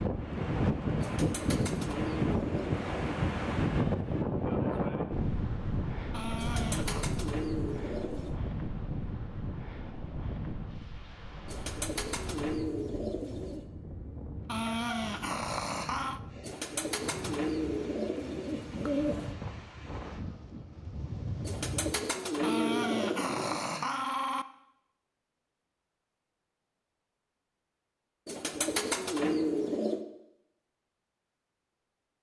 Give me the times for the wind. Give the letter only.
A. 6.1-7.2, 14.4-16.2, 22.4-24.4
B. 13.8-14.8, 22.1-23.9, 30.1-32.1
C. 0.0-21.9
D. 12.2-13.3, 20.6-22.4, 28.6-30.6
C.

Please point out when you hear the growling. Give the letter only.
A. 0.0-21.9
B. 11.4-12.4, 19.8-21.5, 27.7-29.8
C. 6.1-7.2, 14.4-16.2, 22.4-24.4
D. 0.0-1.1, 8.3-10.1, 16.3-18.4
C.